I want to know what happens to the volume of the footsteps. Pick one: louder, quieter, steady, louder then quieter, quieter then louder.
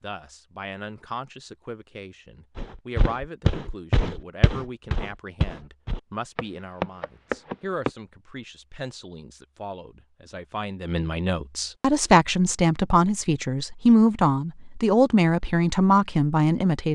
quieter then louder.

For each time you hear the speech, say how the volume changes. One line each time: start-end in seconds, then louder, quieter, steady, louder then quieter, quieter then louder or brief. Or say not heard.
0.0-16.9 louder.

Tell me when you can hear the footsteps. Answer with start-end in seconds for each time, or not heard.
2.5-7.9.